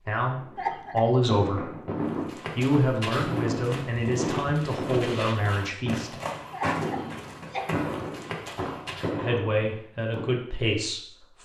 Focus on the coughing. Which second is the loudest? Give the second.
1 s.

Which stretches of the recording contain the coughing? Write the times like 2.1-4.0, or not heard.
0.6-1.1, 6.5-7.7.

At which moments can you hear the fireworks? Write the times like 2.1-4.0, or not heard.
0.2-10.4.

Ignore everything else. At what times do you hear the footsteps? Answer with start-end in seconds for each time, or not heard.
2.0-9.2.